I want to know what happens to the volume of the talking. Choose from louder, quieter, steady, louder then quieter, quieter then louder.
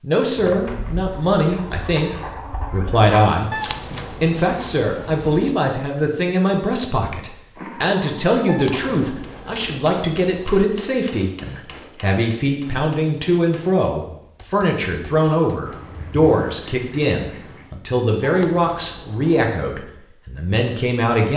steady.